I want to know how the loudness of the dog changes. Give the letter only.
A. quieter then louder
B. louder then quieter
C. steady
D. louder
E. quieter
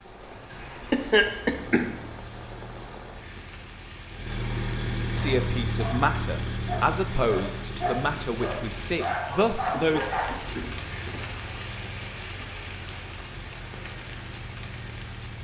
D.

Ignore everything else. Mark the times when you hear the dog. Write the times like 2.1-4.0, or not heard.
5.2-10.3.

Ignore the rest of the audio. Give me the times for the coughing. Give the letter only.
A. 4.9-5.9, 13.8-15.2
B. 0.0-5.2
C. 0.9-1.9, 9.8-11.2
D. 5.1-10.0
C.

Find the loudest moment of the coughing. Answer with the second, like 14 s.
1 s.